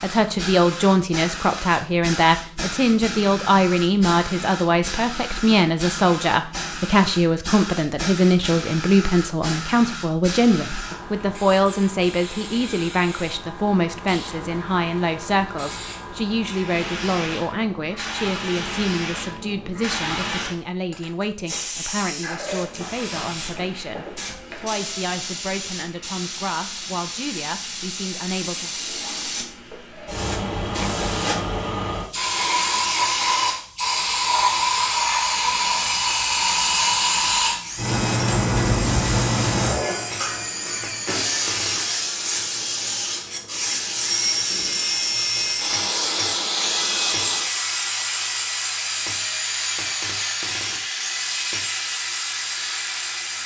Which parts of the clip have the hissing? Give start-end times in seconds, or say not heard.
0.0-53.4.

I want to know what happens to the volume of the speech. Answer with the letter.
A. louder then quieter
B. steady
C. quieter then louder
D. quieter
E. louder
D.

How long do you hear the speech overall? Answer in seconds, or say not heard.
29 s.